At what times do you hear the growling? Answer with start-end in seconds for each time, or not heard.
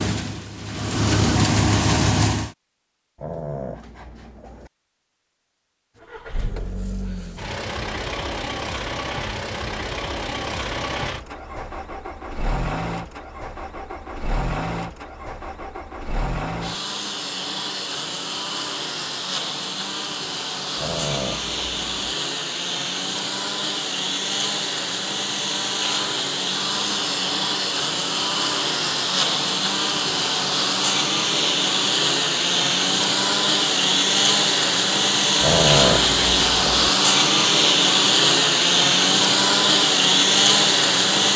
3.1-4.7, 20.8-22.1, 35.4-36.8.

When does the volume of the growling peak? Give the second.
36 s.